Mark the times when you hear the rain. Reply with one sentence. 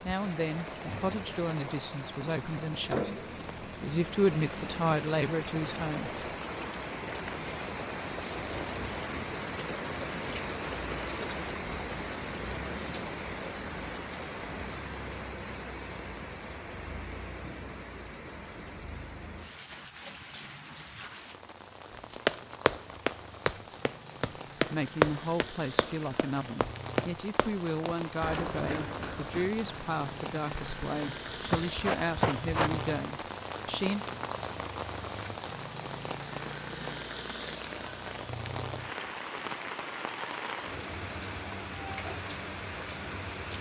You can hear the rain from 0.0 to 43.5 s.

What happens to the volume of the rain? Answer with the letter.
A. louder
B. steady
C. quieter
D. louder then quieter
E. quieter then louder
E.